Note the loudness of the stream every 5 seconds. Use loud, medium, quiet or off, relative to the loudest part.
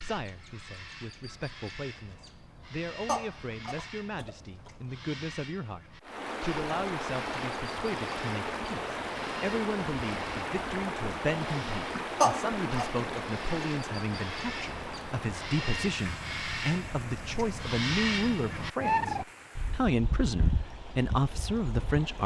off, loud, loud, medium, quiet.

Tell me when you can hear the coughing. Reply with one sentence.
The coughing can be heard from 3.0 to 4.7 s and from 12.2 to 12.8 s.